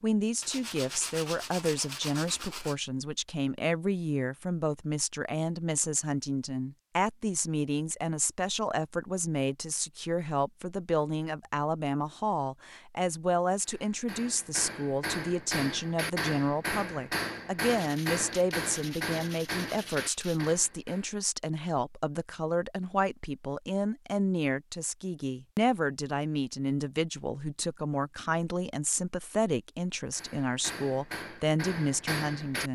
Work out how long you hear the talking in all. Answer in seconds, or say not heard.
33 s.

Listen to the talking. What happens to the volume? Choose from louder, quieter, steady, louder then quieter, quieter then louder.
steady.